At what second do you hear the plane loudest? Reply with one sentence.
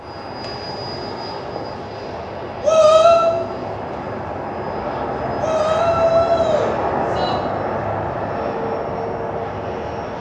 The volume of the plane peaks at 7 seconds.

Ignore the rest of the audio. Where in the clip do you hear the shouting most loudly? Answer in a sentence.
The volume of the shouting peaks at 3 seconds.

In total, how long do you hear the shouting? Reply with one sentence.
You can hear the shouting for 3 seconds altogether.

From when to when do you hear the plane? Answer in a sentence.
You can hear the plane from 0.0 to 10.1 s.